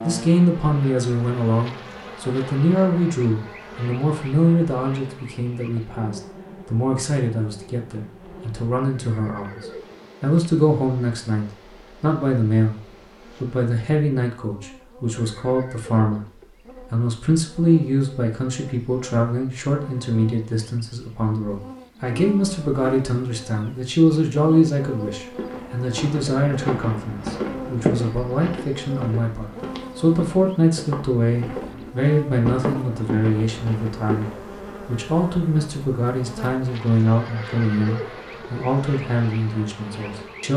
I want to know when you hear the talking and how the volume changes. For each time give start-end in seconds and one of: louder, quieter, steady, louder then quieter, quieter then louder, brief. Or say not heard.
0.0-40.5 steady.